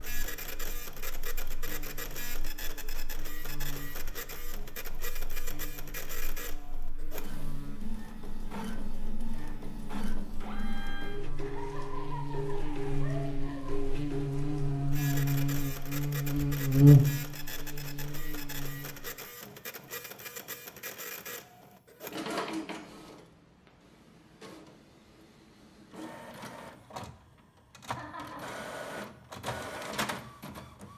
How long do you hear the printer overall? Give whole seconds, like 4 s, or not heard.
31 s.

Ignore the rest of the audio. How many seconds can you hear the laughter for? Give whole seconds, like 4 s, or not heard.
3 s.